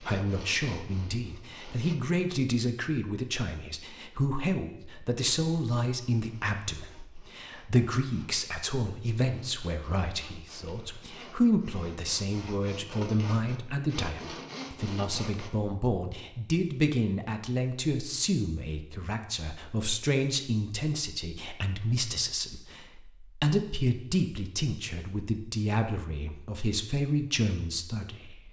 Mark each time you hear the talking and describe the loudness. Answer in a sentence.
You can hear the talking from 0.0 to 28.4 s, at a steady volume.